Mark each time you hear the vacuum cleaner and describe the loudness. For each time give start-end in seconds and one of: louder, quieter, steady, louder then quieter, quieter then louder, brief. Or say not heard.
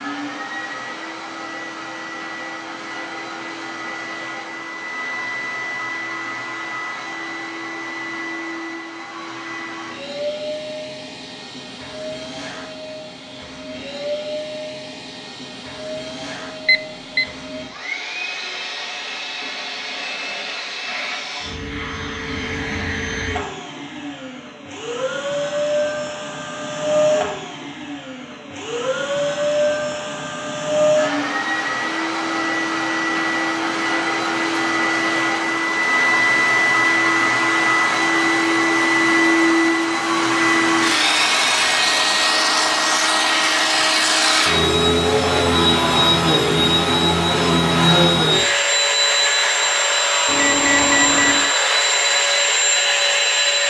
0.0-53.6 louder.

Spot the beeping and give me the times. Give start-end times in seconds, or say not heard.
16.6-17.2, 50.2-51.5.